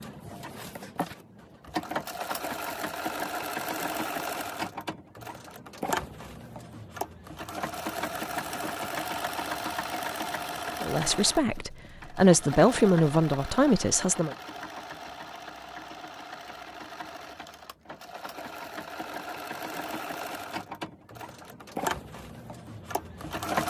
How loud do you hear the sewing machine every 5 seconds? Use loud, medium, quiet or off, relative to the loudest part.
loud, loud, loud, medium, loud.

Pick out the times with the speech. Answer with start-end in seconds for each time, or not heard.
10.8-14.3.